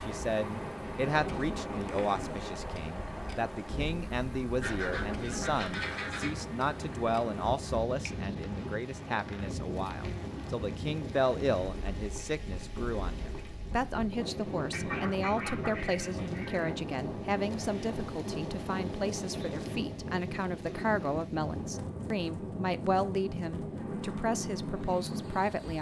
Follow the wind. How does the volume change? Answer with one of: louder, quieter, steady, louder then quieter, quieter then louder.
steady.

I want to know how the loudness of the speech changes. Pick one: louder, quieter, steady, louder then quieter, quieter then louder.
steady.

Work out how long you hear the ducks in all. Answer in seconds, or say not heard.
4 s.